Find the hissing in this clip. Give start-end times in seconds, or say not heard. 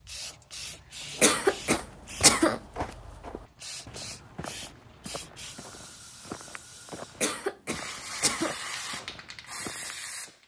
0.0-10.3.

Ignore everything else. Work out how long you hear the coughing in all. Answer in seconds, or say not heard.
3 s.